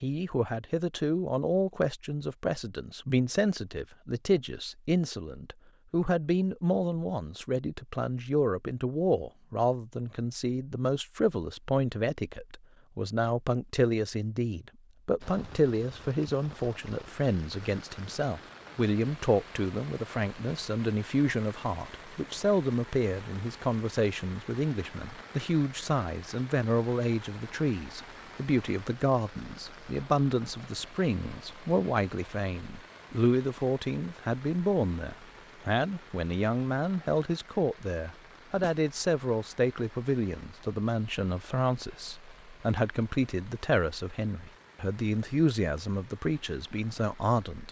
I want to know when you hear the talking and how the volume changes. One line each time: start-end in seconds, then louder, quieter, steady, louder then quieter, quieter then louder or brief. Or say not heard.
0.0-47.6 steady.